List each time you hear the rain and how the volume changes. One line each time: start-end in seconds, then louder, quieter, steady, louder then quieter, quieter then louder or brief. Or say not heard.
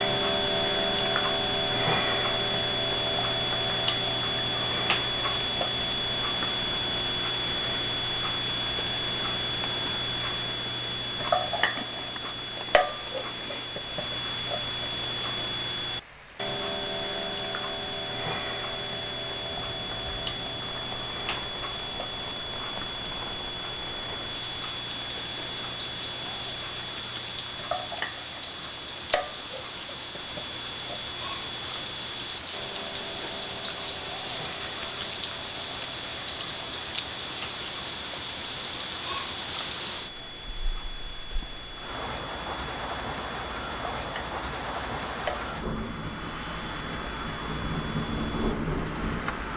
0.1-49.5 louder.